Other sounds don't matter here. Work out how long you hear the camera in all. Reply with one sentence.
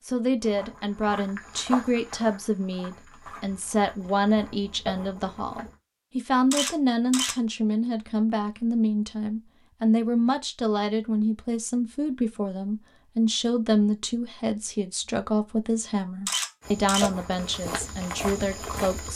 You can hear the camera for 2 seconds altogether.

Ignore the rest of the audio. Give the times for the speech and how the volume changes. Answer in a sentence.
The speech can be heard from 0.1 to 19.1 s, at a steady volume.